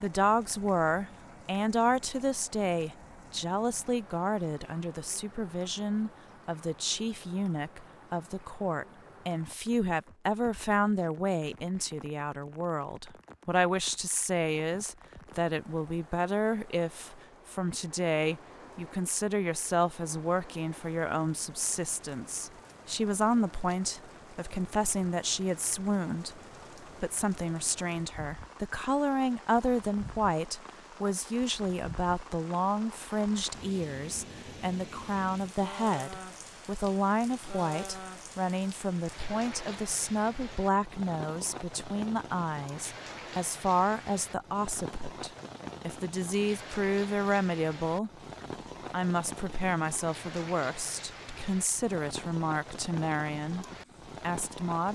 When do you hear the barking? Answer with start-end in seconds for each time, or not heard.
not heard.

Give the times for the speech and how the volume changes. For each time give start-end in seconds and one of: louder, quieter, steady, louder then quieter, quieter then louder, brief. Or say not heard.
0.0-26.4 steady
27.0-48.1 steady
48.9-54.9 steady.